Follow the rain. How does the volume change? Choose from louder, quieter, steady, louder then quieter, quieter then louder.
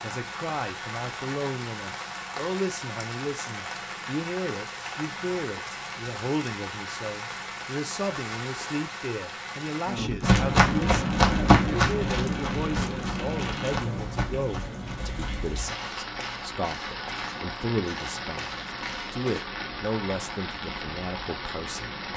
steady.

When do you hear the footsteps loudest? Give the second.
11 s.